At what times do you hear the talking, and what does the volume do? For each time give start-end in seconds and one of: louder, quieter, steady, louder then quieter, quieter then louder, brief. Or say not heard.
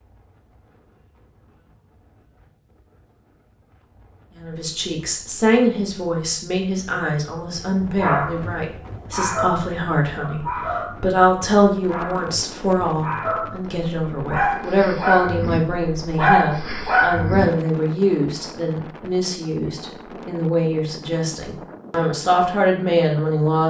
4.3-23.6 steady.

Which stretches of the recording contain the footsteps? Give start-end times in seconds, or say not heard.
not heard.